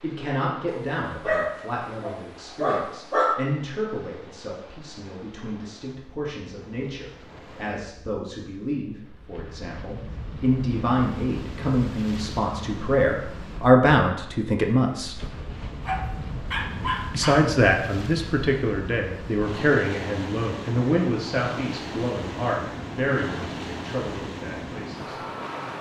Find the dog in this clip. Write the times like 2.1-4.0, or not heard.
0.7-3.4, 15.8-17.5.